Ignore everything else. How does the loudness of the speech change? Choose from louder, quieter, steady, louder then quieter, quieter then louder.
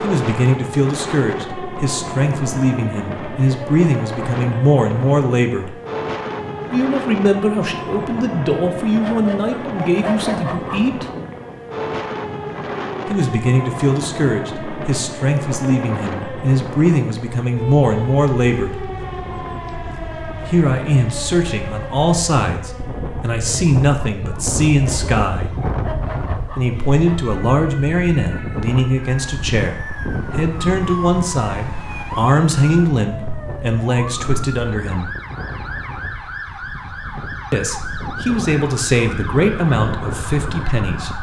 steady.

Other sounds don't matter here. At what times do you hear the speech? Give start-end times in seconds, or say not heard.
0.0-5.8, 6.7-11.1, 13.1-18.8, 20.4-25.6, 26.6-35.1, 37.5-41.1.